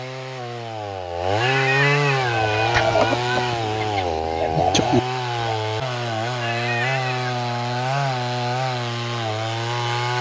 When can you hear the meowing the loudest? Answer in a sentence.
The volume of the meowing peaks at 2 seconds.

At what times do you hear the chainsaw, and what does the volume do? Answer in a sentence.
The chainsaw can be heard from 0.0 to 10.1 s, at a steady volume.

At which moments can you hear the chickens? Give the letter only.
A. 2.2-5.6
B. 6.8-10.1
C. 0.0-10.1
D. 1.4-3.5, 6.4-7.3
A.